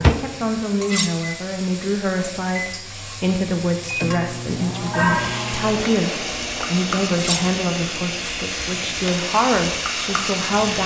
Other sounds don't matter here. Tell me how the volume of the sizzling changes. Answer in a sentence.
The volume of the sizzling goes up.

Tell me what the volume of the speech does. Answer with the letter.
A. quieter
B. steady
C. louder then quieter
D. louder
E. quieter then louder
B.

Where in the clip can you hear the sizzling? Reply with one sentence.
You can hear the sizzling from 0.0 to 10.8 s.